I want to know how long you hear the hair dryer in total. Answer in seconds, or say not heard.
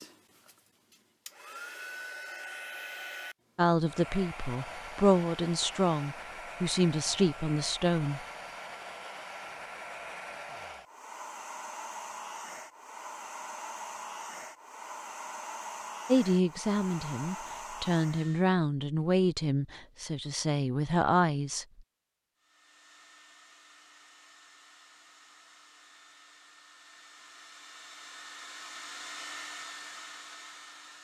27 s.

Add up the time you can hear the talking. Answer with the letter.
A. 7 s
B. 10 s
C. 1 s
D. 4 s
B.